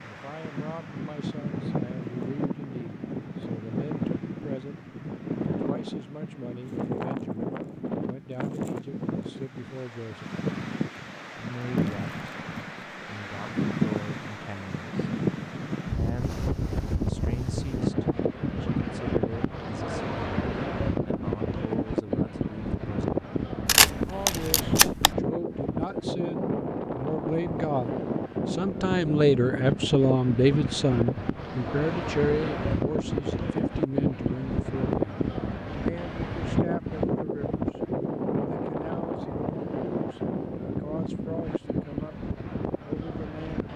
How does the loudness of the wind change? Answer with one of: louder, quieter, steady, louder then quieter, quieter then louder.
steady.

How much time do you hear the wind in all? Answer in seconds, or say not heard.
44 s.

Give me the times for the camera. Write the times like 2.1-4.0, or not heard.
23.6-25.1.